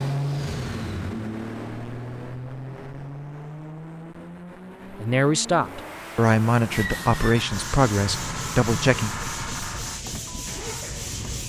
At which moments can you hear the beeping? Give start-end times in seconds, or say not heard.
not heard.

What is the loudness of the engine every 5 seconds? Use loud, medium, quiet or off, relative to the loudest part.
loud, loud, medium.